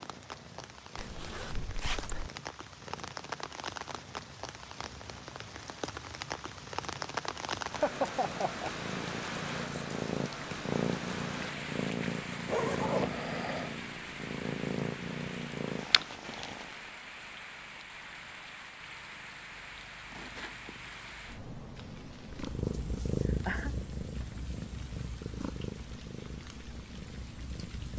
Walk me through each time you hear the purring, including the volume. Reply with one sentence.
The purring can be heard from 0.0 to 16.9 s, getting louder; and from 22.2 to 27.9 s, getting quieter.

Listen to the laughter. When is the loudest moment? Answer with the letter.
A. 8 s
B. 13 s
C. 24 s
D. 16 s
A.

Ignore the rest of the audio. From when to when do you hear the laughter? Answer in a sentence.
You can hear the laughter from 7.7 to 8.7 s and from 23.2 to 23.7 s.